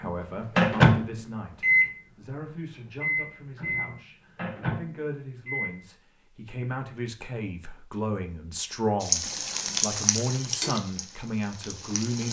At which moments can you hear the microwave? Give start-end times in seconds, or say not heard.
0.0-5.7.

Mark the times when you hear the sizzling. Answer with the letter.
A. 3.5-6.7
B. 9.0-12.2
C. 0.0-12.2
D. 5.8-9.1
B.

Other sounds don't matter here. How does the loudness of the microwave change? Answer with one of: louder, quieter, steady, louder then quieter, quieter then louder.
quieter.